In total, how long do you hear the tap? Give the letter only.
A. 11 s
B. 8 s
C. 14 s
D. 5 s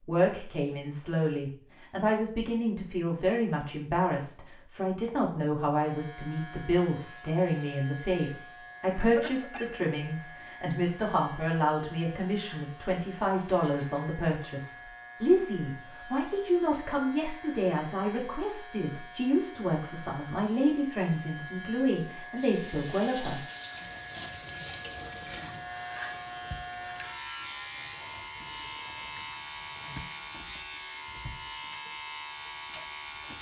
A.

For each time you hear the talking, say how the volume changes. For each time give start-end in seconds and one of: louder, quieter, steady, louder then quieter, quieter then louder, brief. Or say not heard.
0.1-23.4 steady.